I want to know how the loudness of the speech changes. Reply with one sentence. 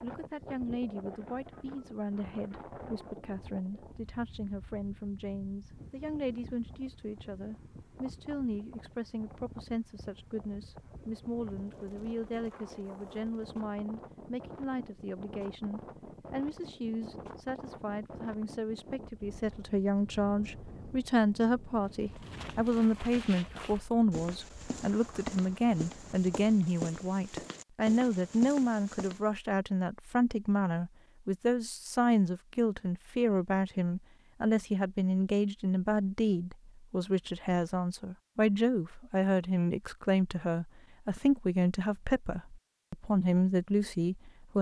The loudness of the speech goes up.